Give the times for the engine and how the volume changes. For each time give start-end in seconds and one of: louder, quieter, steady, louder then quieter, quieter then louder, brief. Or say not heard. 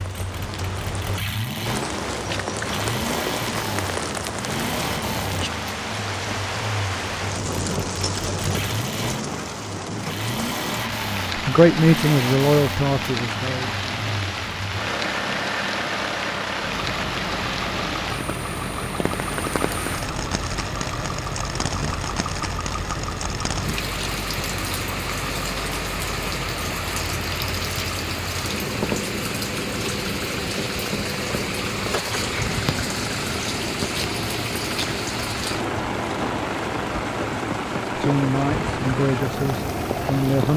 0.0-40.5 steady.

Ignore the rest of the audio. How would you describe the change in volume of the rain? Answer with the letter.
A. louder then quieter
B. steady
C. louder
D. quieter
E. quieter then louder
B.